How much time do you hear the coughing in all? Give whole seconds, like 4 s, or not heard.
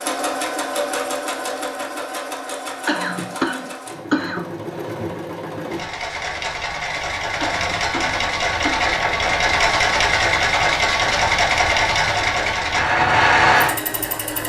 3 s.